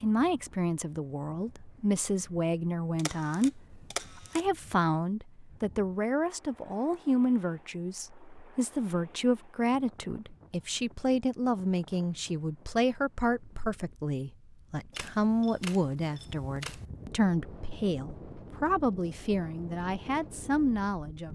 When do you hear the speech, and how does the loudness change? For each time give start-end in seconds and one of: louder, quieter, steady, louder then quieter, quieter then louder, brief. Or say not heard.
0.0-21.2 steady.